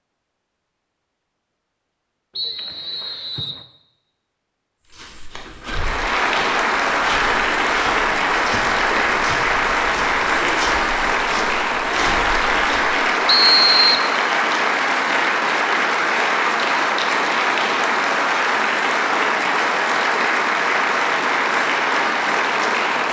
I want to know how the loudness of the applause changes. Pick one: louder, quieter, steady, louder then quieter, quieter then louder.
steady.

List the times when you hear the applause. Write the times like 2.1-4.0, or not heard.
5.6-23.0.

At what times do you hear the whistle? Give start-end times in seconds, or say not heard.
2.4-3.6, 13.2-14.1.